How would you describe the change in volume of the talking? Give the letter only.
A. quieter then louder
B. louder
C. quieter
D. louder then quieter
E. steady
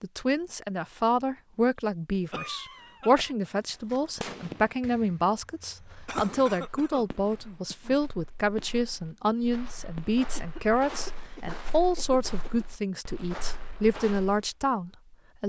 E.